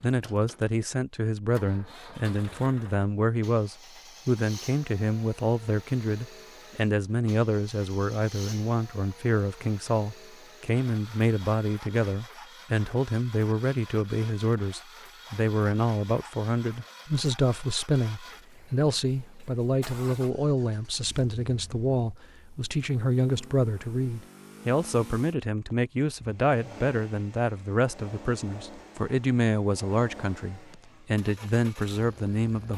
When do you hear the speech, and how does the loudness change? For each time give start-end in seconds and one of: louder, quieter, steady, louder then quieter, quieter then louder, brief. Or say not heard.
0.0-32.7 steady.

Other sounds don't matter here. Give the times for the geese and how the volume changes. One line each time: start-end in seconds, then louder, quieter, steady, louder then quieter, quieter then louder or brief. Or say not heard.
not heard.